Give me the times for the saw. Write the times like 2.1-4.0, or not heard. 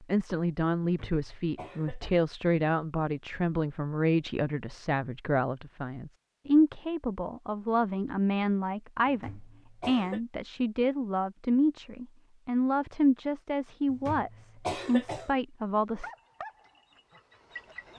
not heard.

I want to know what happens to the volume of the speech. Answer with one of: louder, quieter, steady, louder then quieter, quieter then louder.
steady.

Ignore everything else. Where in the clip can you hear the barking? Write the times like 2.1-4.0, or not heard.
16.0-17.9.